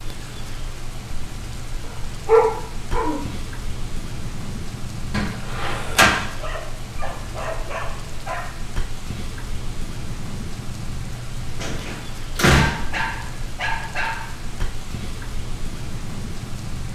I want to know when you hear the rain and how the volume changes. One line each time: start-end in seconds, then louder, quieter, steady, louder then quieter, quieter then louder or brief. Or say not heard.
0.0-16.9 steady.